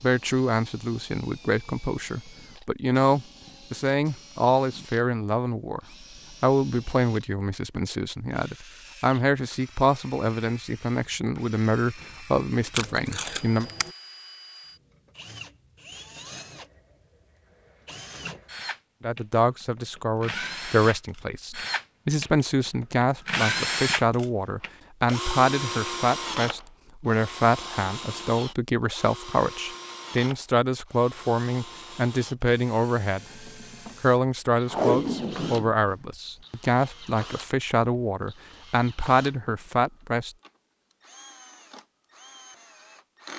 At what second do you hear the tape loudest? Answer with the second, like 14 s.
35 s.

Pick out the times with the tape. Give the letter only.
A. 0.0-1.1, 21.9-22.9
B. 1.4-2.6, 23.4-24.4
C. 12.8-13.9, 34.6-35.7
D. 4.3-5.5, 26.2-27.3
C.